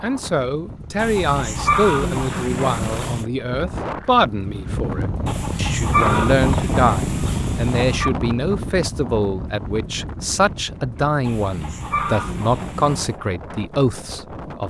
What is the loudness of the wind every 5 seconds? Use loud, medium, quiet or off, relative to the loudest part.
medium, loud, medium.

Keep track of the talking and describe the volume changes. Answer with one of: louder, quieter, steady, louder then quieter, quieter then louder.
steady.